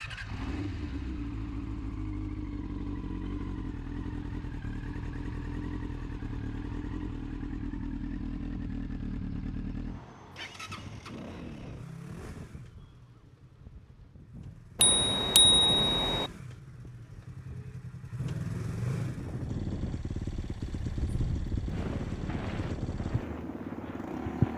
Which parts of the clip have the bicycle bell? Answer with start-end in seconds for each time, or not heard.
14.8-16.3.